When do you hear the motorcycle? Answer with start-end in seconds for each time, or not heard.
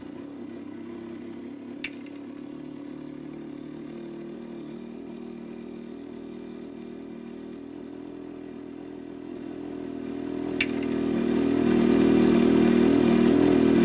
0.0-13.7.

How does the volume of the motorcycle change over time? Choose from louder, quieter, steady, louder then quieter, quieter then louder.
louder.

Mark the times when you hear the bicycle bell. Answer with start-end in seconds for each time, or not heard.
1.8-2.4, 10.6-11.2.